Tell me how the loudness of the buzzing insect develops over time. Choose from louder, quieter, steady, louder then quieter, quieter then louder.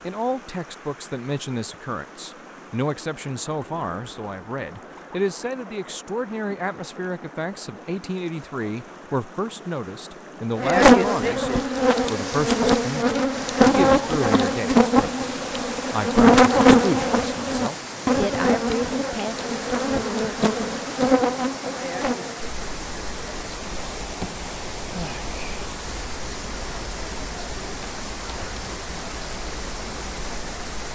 quieter.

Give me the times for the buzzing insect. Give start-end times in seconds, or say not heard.
10.6-30.8.